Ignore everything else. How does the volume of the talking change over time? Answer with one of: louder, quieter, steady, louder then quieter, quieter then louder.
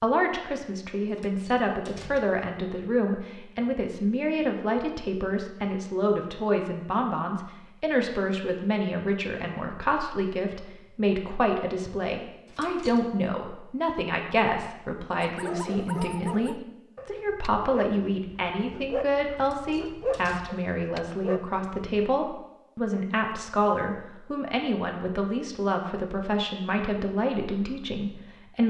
steady.